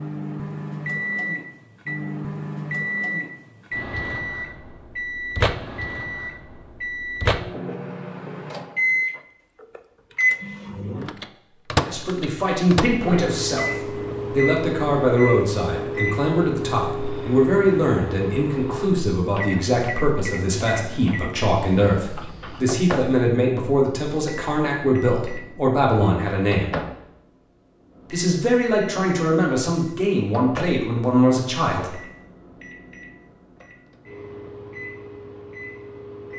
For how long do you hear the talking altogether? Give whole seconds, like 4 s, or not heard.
19 s.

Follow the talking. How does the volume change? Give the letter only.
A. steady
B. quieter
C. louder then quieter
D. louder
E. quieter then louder
A.